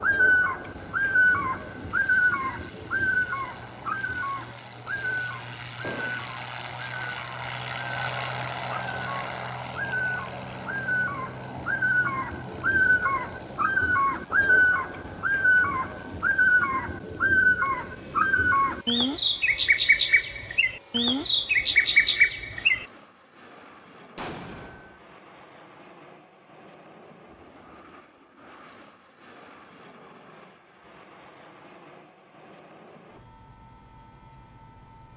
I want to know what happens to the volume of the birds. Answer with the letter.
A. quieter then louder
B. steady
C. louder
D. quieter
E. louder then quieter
A.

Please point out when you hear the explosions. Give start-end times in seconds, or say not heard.
5.8-6.3, 24.1-25.0.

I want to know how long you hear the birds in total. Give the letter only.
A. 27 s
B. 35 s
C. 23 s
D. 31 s
C.